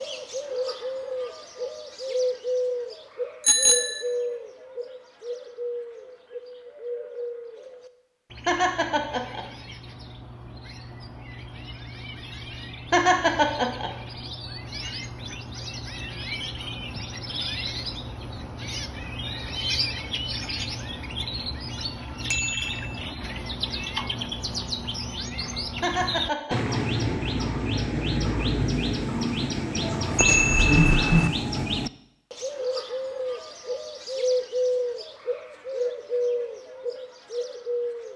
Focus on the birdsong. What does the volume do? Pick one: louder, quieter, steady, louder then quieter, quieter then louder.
quieter then louder.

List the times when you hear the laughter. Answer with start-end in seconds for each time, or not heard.
8.4-9.4, 12.9-13.9, 25.8-26.8.